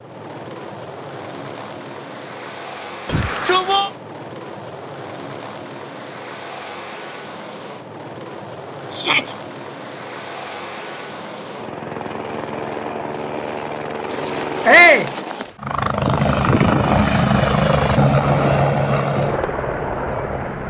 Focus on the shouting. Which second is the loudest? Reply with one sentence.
The loudest moment of the shouting is at 15 seconds.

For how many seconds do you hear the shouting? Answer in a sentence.
The shouting can be heard for 2 seconds in total.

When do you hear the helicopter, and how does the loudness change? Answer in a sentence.
You can hear the helicopter from 0.0 to 20.6 s, getting louder.